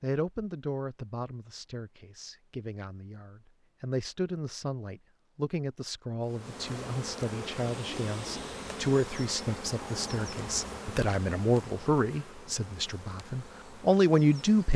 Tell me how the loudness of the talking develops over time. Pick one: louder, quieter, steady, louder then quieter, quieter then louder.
louder.